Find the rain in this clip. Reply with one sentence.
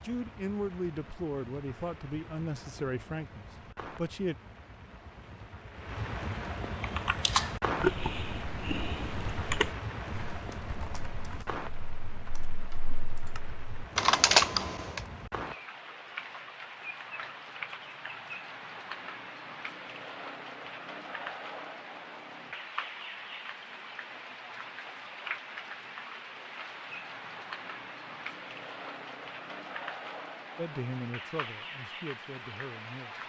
You can hear the rain from 0.0 to 33.2 s.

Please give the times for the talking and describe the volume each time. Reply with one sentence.
The talking can be heard from 0.0 to 4.3 s, getting quieter; and briefly from 30.6 to 33.2 s.